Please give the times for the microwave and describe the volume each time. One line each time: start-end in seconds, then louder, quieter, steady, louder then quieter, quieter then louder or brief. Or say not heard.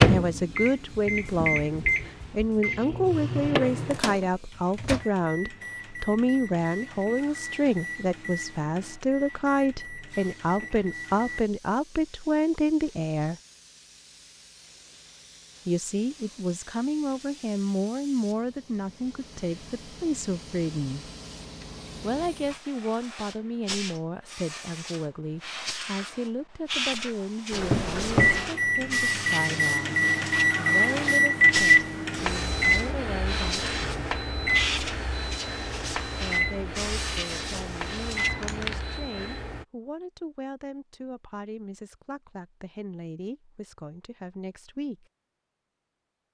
0.0-11.4 quieter
27.5-39.6 quieter.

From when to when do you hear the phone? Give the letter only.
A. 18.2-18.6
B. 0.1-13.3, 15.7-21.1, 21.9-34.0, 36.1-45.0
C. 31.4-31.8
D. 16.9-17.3
C.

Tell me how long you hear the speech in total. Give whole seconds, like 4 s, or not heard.
40 s.